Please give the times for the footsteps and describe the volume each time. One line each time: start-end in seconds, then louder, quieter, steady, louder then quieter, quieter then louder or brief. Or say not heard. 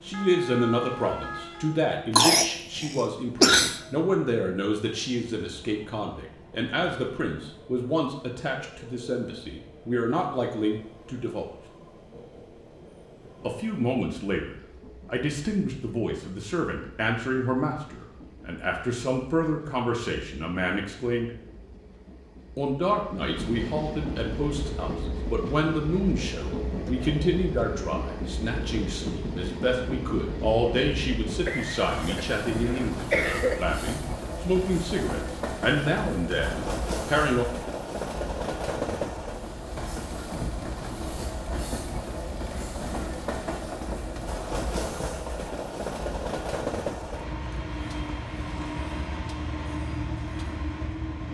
not heard.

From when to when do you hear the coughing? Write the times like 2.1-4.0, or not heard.
2.1-3.8, 31.4-33.6.